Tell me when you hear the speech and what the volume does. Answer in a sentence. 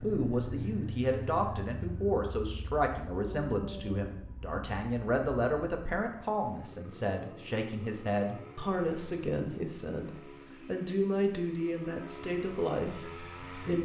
The speech can be heard from 0.0 to 13.8 s, at a steady volume.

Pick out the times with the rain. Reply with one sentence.
You can't hear the rain here.